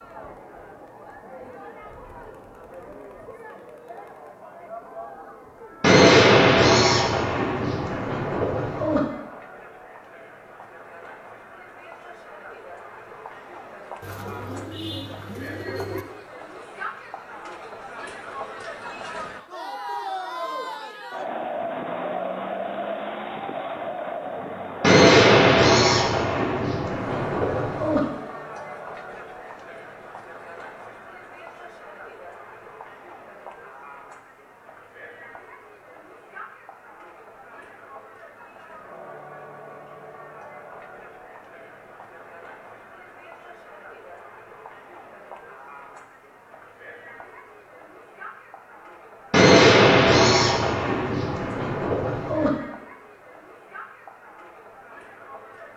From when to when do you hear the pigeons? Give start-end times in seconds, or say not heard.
14.0-16.1.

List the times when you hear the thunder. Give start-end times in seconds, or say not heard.
5.8-9.0, 24.8-28.0, 49.3-52.5.